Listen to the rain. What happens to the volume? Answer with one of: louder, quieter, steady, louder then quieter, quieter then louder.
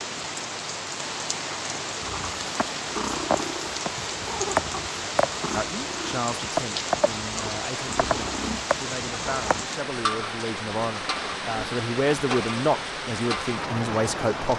steady.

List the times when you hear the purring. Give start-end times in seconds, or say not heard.
2.0-9.7.